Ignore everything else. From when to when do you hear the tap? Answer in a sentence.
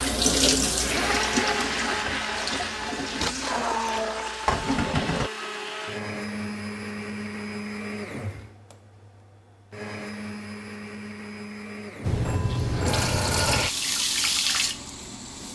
The tap can be heard from 0.0 to 5.3 s and from 12.0 to 15.5 s.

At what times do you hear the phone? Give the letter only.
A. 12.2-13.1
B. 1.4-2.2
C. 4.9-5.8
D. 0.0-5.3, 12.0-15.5
A.